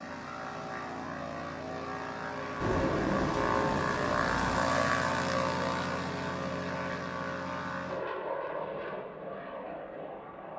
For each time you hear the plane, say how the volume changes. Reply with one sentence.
The plane can be heard from 0.0 to 10.5 s, getting louder then quieter.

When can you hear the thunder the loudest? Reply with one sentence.
The volume of the thunder peaks at 3 seconds.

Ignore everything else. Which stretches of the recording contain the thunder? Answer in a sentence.
The thunder can be heard from 2.6 to 4.6 s.